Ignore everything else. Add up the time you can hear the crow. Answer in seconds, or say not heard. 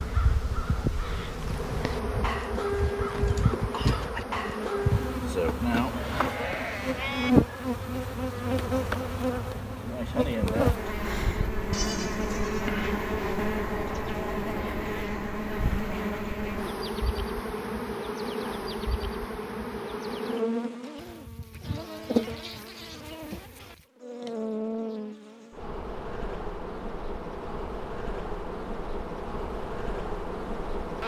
5 s.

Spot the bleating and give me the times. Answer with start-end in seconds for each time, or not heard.
5.9-7.3, 11.7-12.7, 20.9-23.9.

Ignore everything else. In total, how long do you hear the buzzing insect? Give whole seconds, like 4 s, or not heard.
31 s.